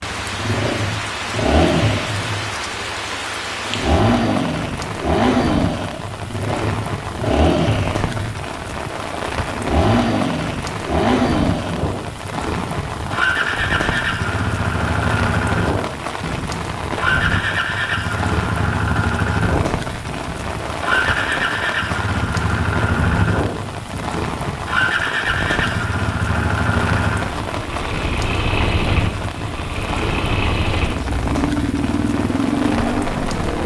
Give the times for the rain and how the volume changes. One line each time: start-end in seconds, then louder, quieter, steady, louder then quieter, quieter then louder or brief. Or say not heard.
0.0-33.6 steady.